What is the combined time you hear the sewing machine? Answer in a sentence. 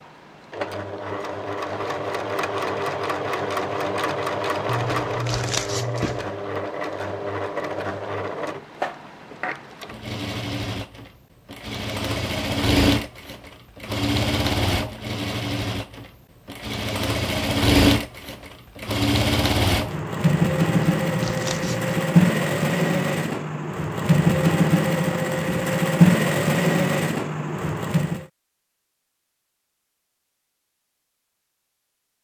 You can hear the sewing machine for 28 seconds altogether.